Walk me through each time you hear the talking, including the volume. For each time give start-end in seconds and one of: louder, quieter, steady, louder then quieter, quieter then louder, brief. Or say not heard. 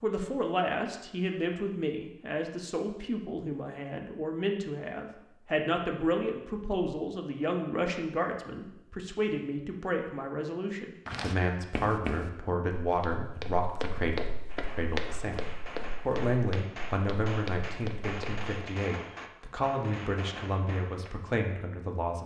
0.0-22.2 steady.